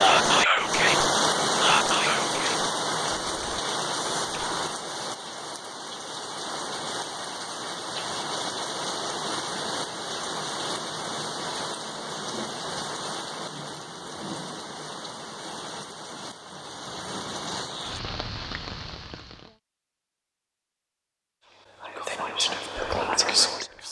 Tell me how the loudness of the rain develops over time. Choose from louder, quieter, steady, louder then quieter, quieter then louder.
quieter.